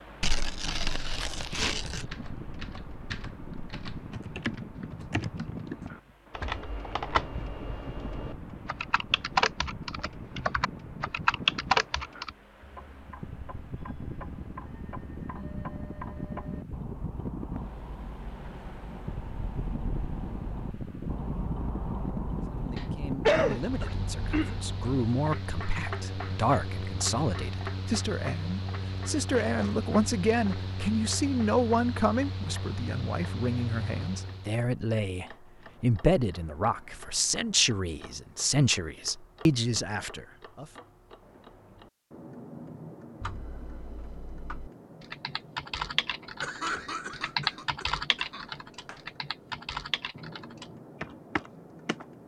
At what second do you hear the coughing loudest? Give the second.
23 s.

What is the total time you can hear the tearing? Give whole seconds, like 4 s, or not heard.
2 s.